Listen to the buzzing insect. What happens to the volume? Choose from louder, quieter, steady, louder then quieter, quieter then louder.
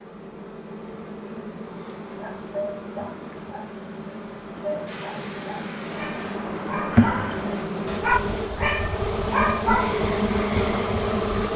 louder.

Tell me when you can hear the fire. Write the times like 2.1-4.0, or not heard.
not heard.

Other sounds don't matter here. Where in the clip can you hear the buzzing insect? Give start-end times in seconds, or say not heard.
0.0-11.5.